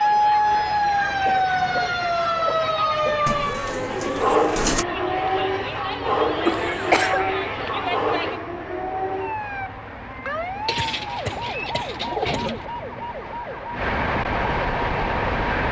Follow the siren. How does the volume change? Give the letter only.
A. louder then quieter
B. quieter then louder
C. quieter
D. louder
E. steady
C.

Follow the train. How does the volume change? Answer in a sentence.
The loudness of the train goes up.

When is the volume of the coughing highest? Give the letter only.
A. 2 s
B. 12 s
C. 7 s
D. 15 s
C.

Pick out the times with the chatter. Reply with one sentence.
You can hear the chatter from 0.0 to 8.4 s.